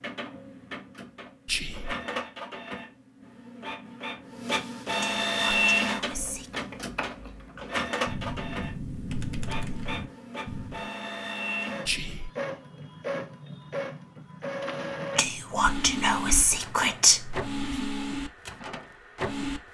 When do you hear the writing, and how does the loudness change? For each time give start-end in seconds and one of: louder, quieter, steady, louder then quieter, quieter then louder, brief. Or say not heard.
not heard.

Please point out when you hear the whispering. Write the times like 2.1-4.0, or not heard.
1.4-1.9, 5.0-6.7, 11.8-12.3, 15.2-17.4.